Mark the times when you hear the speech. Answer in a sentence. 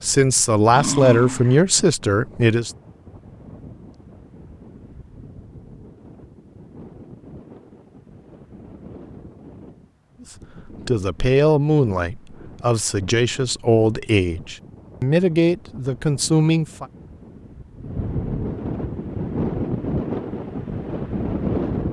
The speech can be heard from 0.0 to 2.7 s and from 10.8 to 16.9 s.